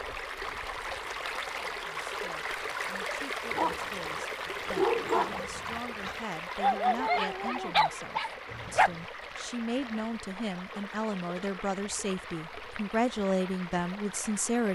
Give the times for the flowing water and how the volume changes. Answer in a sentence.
The flowing water can be heard from 0.0 to 14.7 s, getting quieter.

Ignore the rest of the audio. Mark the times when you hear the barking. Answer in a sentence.
You can hear the barking from 3.5 to 8.9 s.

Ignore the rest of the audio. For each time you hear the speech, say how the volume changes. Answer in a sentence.
The speech can be heard from 1.7 to 14.7 s, getting louder.